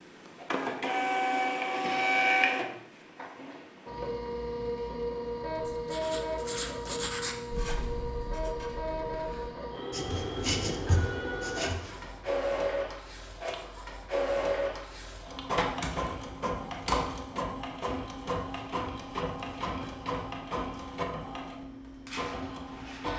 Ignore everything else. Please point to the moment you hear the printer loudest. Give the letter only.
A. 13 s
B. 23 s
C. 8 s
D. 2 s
D.